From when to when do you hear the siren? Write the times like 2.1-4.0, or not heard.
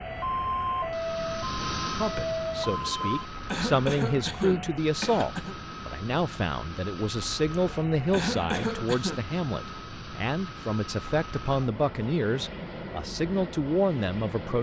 0.0-3.2.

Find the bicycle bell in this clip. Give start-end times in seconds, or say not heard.
not heard.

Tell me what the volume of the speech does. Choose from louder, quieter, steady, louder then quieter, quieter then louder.
steady.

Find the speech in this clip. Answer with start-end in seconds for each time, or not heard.
1.9-14.5.